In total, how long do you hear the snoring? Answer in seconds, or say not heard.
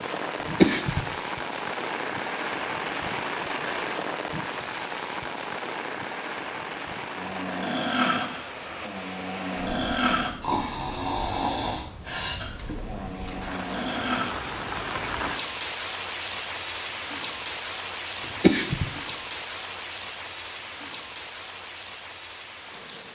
7 s.